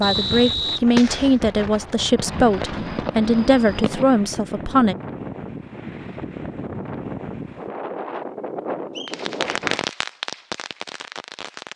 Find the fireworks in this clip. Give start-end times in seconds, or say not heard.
0.0-4.0, 9.1-11.7.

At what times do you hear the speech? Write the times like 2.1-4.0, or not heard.
0.0-5.0.